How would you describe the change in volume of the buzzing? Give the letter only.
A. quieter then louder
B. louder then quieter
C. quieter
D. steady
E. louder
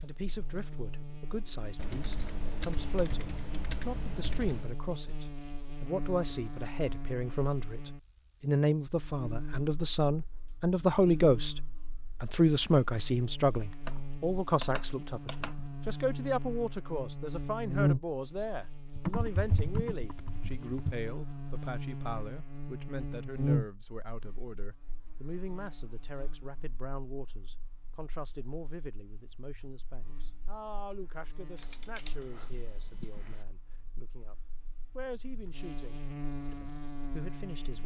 B.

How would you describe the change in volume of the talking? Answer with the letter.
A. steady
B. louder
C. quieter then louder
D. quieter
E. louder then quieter
E.